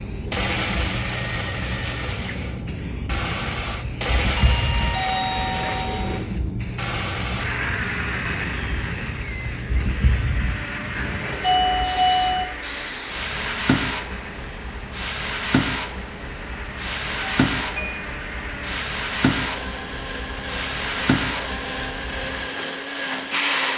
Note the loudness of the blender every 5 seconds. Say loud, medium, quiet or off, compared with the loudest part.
loud, loud, medium, medium, loud.